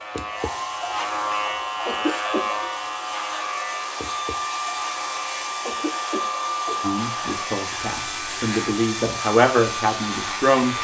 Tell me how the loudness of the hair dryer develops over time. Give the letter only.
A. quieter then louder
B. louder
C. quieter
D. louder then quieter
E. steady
B.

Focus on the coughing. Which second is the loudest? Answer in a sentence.
The loudest moment of the coughing is at 2 seconds.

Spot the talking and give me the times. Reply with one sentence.
You can hear the talking from 6.8 to 10.7 s.